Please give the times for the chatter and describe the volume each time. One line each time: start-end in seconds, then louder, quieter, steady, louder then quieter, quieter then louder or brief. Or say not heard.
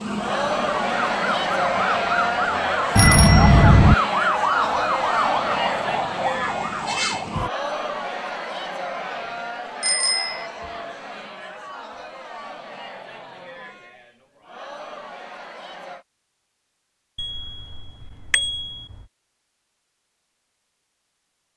0.0-16.1 quieter.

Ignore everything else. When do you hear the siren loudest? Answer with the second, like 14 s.
4 s.